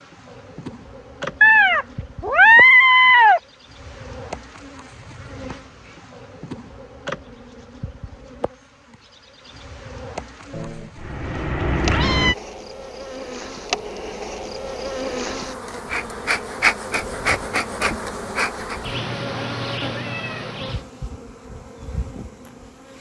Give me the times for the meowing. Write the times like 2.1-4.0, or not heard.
1.4-3.4, 10.6-12.3, 18.9-20.6.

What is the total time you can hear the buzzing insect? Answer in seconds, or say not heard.
23 s.